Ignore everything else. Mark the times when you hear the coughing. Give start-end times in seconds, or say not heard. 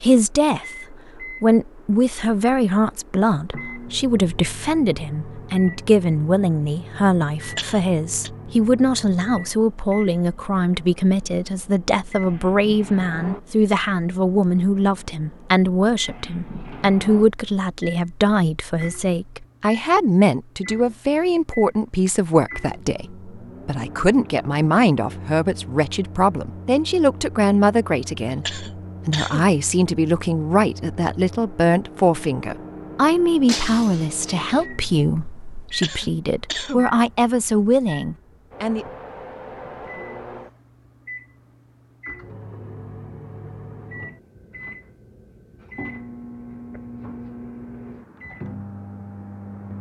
7.4-8.3, 28.3-29.5, 35.8-36.9.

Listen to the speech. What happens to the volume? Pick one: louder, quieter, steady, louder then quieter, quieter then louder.
steady.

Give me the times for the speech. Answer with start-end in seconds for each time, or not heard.
0.0-38.9.